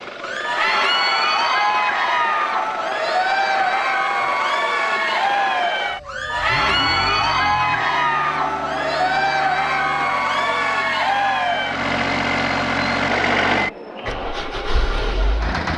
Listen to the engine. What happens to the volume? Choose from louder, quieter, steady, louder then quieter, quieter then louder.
louder.